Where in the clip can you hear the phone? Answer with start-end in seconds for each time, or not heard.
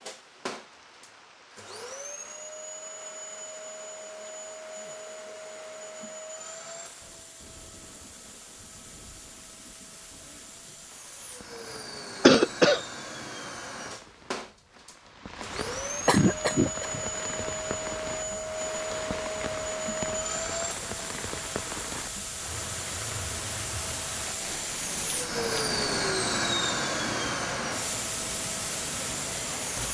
not heard.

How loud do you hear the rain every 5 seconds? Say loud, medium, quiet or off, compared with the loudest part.
quiet, quiet, quiet, loud, loud, loud.